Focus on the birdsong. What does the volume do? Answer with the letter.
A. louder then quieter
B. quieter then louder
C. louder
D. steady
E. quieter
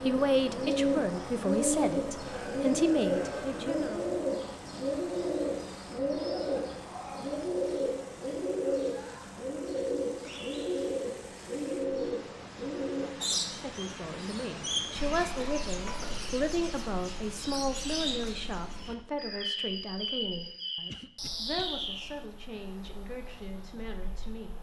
E.